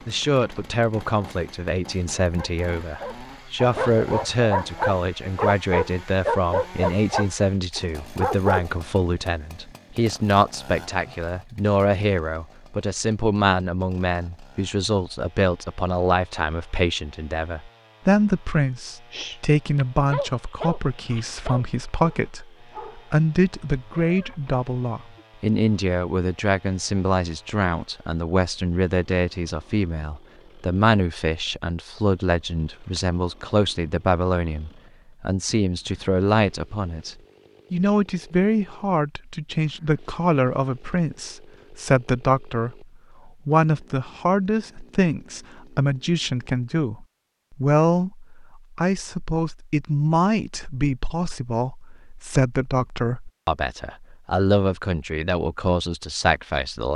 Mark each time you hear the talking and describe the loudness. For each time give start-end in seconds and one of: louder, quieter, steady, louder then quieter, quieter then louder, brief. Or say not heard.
0.1-56.9 steady.